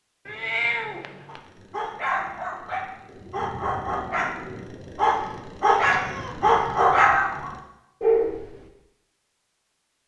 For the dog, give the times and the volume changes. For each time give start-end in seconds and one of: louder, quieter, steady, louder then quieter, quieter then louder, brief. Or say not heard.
1.2-8.7 louder.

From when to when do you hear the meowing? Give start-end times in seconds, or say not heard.
0.2-1.4, 5.8-7.2.